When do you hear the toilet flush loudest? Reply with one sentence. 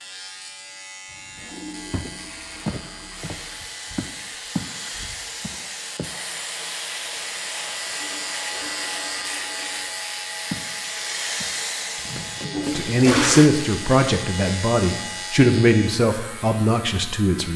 The loudest moment of the toilet flush is at 13 seconds.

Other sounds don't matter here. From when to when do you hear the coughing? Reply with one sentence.
The coughing can't be heard in this clip.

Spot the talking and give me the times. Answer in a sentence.
You can hear the talking from 12.8 to 17.5 s.